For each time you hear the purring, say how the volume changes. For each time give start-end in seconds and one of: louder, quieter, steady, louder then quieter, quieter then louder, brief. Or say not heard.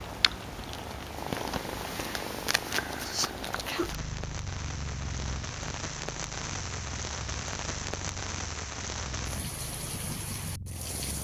0.0-11.2 quieter.